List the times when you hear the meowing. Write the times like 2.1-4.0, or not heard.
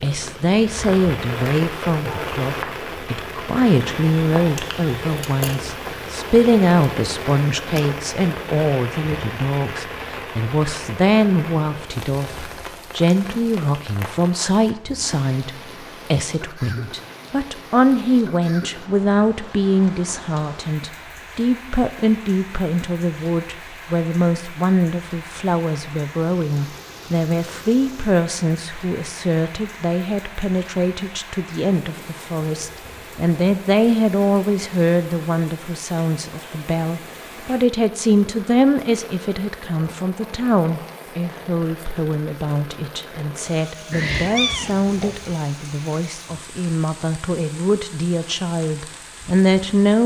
43.9-45.4.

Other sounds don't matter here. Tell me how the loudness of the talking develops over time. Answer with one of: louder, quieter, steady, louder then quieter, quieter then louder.
steady.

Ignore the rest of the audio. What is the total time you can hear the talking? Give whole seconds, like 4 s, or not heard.
50 s.